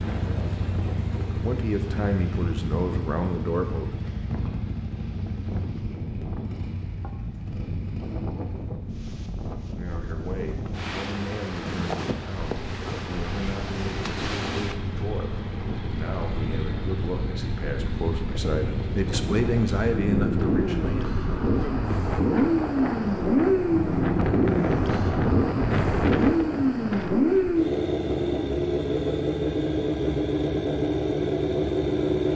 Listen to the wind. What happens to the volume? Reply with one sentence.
The loudness of the wind goes up.